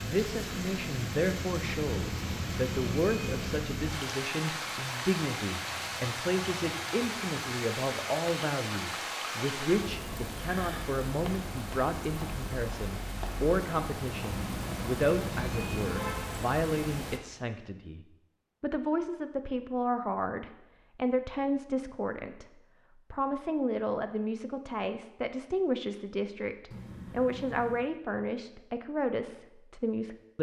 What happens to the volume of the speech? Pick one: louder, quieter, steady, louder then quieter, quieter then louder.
steady.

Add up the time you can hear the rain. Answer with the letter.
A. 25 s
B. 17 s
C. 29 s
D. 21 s
B.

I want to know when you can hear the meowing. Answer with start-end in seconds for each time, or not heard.
1.6-3.6, 14.1-16.1, 26.7-27.9.